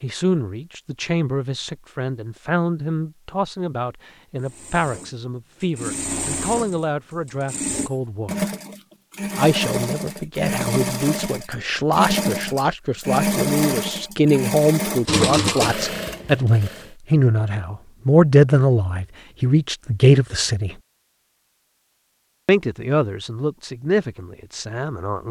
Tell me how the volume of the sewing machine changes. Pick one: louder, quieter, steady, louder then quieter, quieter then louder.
louder.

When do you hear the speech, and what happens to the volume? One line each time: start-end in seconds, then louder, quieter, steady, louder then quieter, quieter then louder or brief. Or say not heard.
0.0-8.5 steady
9.3-20.8 louder
22.4-25.2 brief.